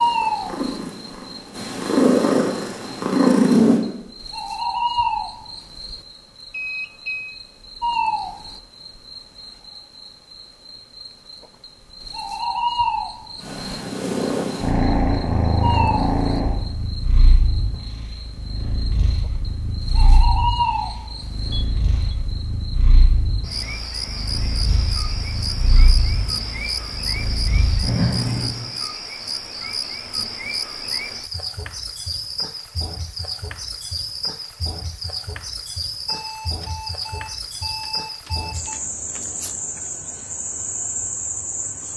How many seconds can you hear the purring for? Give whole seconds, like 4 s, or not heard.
19 s.